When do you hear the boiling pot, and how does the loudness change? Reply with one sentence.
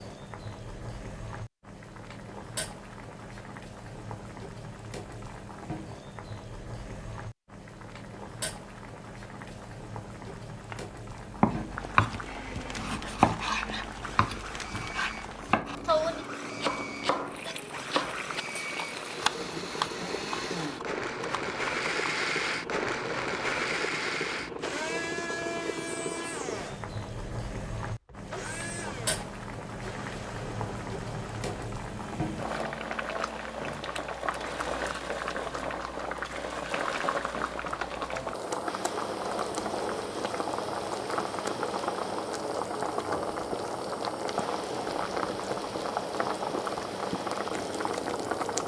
The boiling pot can be heard from 0.0 to 48.6 s, getting louder.